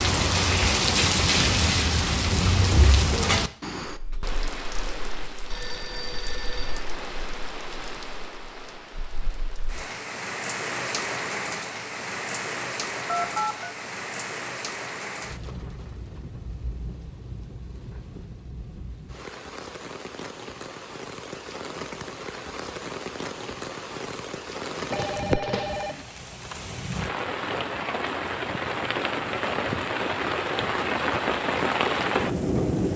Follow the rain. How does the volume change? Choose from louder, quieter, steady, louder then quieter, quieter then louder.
quieter then louder.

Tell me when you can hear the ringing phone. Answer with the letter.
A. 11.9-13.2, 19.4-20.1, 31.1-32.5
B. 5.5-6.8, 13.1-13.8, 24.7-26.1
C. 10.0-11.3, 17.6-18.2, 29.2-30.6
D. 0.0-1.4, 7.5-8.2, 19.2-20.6
B.